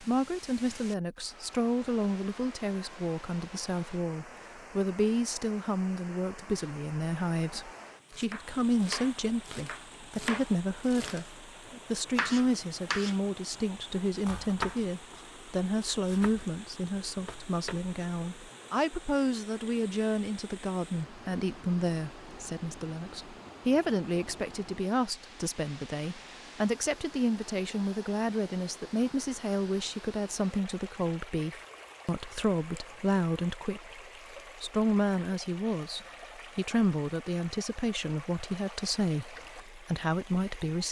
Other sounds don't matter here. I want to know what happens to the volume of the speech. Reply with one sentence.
The volume of the speech stays about the same.